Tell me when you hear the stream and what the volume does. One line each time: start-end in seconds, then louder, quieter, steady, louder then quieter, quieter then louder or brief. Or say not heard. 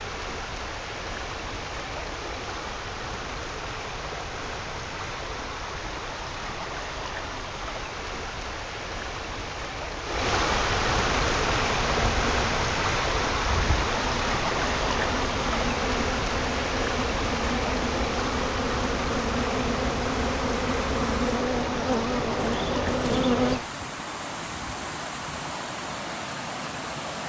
0.0-27.2 louder then quieter.